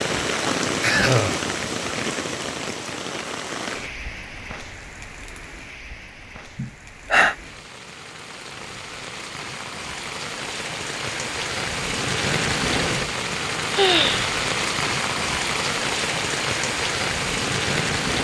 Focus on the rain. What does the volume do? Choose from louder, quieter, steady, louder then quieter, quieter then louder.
quieter then louder.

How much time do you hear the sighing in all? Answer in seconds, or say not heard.
2 s.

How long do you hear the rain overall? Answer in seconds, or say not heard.
18 s.